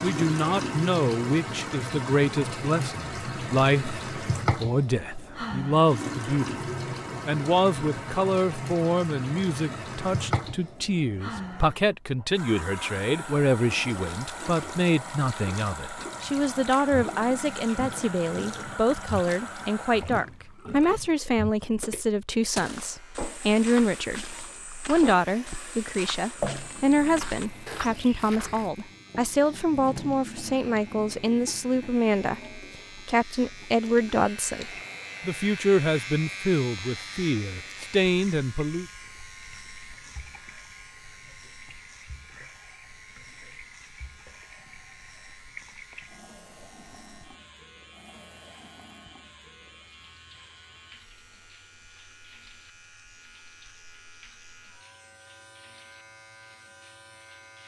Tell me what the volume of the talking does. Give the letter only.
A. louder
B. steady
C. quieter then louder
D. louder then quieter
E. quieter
B.